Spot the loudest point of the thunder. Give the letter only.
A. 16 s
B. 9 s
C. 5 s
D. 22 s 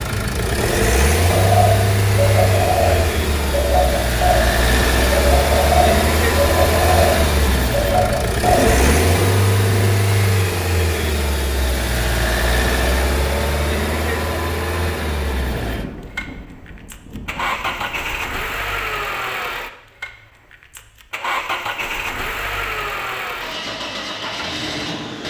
B.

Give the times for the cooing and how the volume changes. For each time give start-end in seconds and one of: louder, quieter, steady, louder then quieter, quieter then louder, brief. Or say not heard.
1.2-8.8 steady.